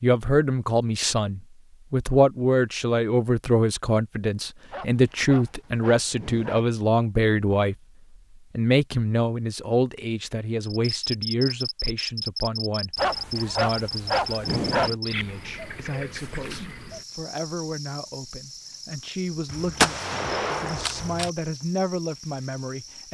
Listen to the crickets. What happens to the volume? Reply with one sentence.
The loudness of the crickets goes down.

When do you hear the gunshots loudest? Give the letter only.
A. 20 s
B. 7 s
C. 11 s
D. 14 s
A.